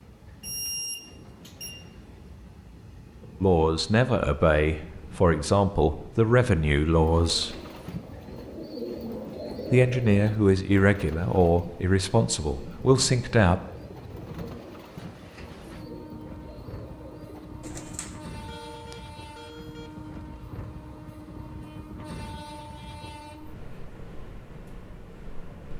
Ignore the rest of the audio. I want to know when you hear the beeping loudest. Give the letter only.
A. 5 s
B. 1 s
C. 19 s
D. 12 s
B.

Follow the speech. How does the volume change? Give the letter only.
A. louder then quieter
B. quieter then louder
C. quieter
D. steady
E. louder
D.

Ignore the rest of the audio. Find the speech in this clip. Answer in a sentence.
You can hear the speech from 3.4 to 7.5 s and from 9.7 to 13.6 s.